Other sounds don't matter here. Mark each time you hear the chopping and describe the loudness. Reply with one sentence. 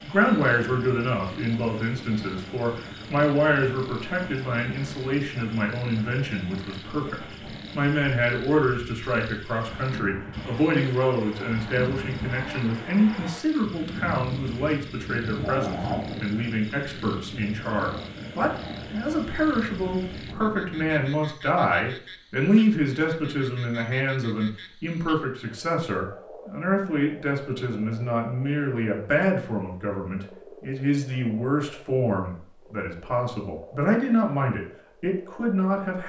The chopping can't be heard in this clip.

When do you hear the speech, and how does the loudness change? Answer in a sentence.
The speech can be heard from 0.0 to 36.0 s, at a steady volume.